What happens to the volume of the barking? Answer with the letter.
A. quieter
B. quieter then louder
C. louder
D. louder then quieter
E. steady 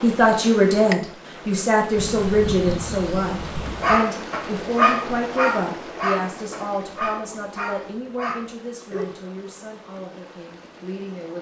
A.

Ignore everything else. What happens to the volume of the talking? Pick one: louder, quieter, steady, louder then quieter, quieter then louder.
quieter.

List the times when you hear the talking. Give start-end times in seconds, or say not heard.
0.0-11.3.